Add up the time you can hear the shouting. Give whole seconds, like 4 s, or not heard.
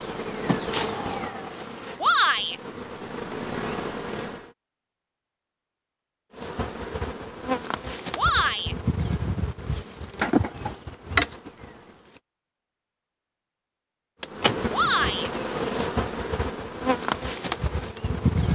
2 s.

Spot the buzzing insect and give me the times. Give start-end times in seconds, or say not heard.
0.0-4.5, 6.3-12.2, 14.2-18.5.